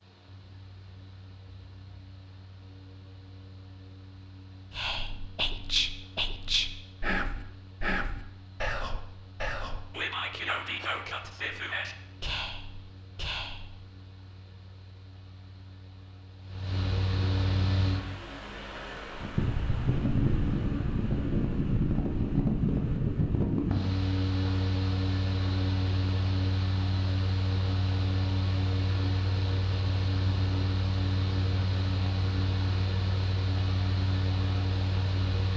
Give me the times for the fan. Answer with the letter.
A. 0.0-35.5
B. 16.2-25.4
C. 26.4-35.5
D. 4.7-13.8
A.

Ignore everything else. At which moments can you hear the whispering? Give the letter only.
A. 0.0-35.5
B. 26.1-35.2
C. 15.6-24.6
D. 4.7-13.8
D.